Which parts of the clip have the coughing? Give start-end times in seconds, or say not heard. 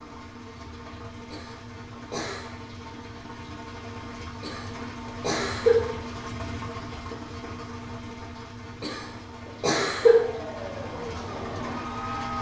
1.3-2.5, 4.4-5.8, 8.8-10.2.